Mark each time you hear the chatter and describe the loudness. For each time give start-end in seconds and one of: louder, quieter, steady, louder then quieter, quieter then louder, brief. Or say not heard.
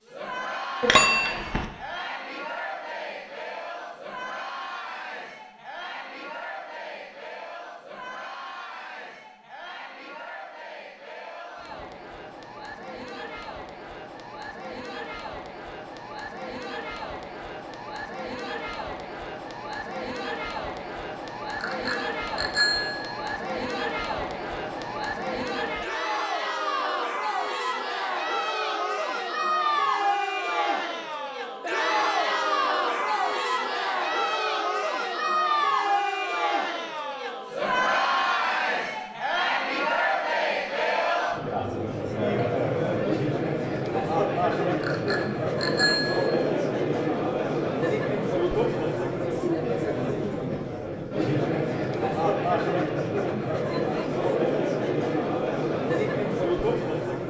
0.0-57.2 louder.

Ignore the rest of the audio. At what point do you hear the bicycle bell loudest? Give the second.
1 s.